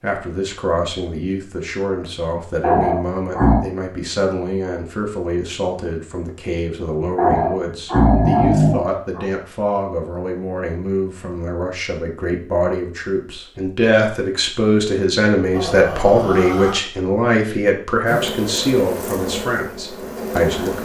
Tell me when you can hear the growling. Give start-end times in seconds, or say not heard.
2.6-3.6, 7.2-9.2, 15.5-16.8.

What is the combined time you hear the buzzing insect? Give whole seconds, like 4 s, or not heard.
3 s.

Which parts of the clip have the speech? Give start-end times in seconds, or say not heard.
0.0-20.8.